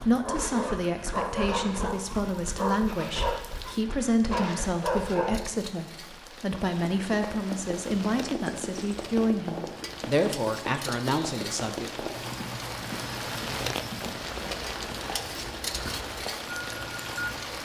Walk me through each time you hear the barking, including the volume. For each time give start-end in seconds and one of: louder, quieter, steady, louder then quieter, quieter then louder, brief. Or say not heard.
0.0-5.7 quieter then louder.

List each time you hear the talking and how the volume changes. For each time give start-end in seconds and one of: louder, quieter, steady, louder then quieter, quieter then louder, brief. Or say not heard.
0.1-12.1 steady.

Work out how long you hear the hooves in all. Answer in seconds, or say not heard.
11 s.